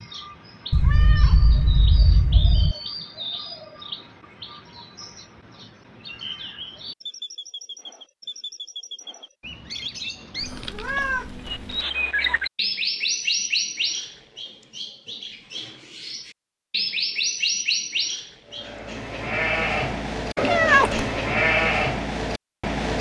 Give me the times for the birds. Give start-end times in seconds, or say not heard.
0.0-18.7.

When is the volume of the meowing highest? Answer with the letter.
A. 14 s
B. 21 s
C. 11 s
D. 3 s
B.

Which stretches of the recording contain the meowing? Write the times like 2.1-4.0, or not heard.
0.7-2.8, 10.3-11.8, 20.4-21.1.